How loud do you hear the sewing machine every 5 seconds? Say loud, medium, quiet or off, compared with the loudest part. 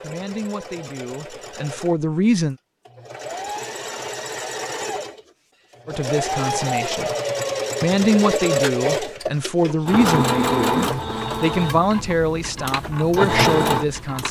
medium, loud, loud.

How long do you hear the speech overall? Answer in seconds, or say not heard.
10 s.